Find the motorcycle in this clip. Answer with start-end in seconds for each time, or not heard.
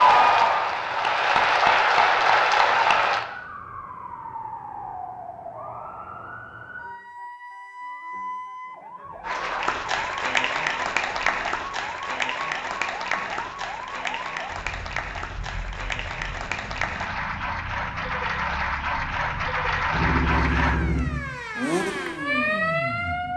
19.9-23.3.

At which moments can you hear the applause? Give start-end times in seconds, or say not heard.
0.0-3.2, 9.2-20.8.